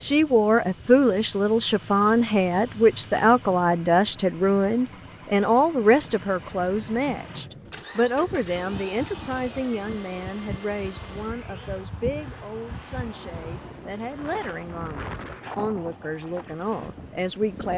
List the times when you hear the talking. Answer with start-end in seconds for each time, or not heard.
0.0-17.7.